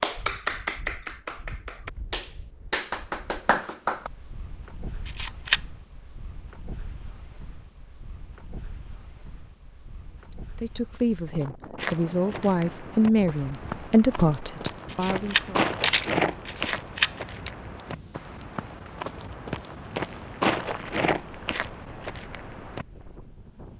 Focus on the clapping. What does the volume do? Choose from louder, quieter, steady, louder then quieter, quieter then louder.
quieter then louder.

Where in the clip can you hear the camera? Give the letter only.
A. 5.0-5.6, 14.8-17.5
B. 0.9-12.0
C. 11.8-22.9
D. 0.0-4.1
A.